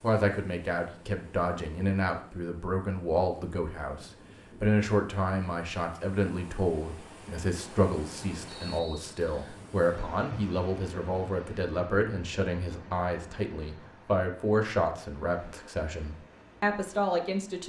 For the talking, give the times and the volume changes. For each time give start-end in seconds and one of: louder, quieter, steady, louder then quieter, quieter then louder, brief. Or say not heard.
0.0-17.6 steady.